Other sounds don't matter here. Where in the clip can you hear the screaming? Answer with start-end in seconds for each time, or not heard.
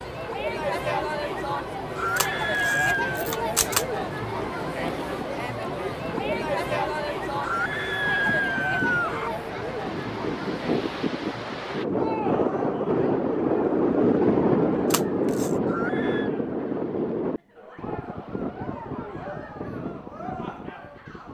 1.9-3.1, 7.4-9.3, 15.7-16.3.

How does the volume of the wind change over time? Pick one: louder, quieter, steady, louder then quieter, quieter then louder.
louder then quieter.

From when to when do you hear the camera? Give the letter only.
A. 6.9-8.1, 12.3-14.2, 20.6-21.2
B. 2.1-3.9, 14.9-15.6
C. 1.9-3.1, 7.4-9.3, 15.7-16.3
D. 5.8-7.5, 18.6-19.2
B.